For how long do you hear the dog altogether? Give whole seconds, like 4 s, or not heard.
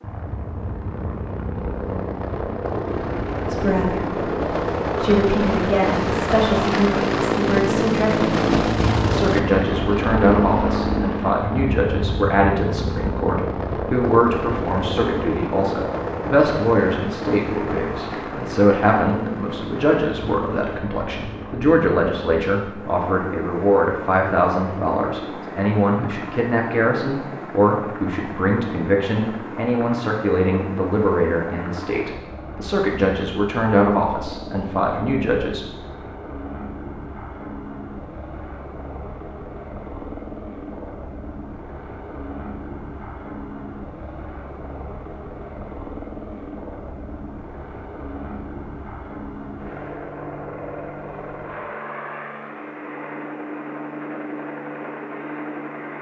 not heard.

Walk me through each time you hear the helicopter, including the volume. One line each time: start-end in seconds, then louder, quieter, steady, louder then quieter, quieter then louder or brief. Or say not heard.
0.0-55.9 quieter.